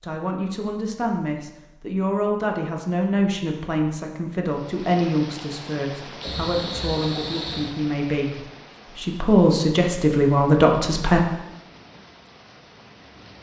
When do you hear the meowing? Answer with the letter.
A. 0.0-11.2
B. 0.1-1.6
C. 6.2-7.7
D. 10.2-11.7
C.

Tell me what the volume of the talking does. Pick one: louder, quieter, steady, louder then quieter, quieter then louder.
louder.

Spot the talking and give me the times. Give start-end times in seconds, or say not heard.
0.0-11.2.